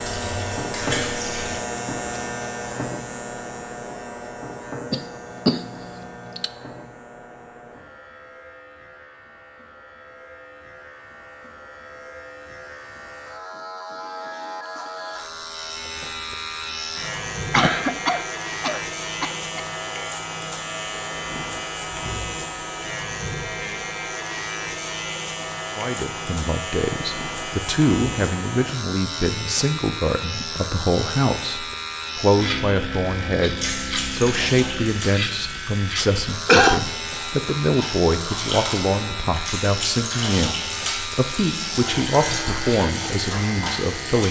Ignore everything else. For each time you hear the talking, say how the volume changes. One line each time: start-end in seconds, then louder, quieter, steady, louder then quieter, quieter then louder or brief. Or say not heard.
25.8-44.2 steady.